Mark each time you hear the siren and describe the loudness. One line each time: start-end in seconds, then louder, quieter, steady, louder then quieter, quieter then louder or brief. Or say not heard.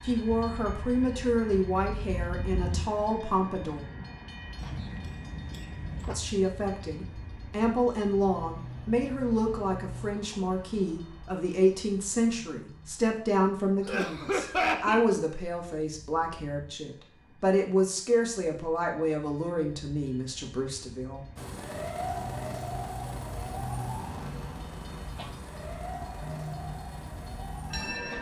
21.4-28.1 quieter.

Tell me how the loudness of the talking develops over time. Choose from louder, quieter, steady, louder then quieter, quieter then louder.
steady.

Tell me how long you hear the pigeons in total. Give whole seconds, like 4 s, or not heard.
not heard.